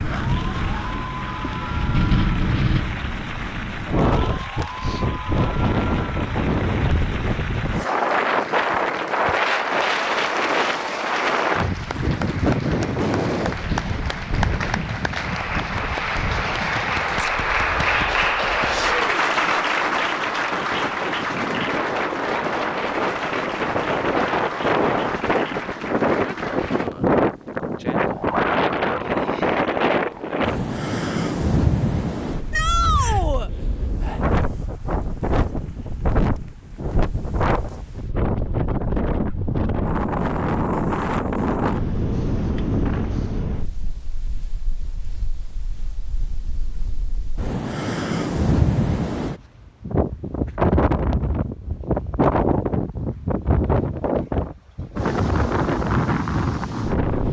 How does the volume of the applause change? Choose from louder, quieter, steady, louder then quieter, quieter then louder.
louder then quieter.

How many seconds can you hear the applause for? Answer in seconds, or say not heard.
27 s.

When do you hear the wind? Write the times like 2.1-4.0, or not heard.
0.0-57.2.